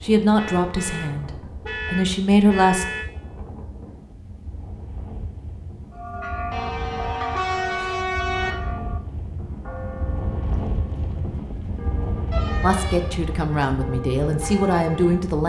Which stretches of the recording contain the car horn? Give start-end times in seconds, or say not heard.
0.3-3.0, 6.5-8.6, 12.3-13.3.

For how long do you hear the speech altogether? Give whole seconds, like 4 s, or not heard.
6 s.